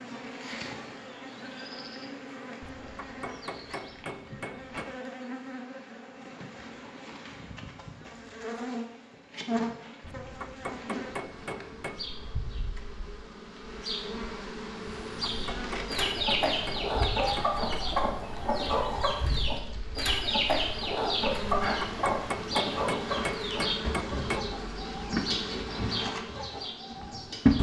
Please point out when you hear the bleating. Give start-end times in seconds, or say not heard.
17.1-19.2.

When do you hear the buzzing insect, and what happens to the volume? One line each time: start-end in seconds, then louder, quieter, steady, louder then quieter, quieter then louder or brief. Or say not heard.
0.0-27.5 louder.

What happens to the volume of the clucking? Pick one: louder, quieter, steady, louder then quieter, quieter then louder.
quieter.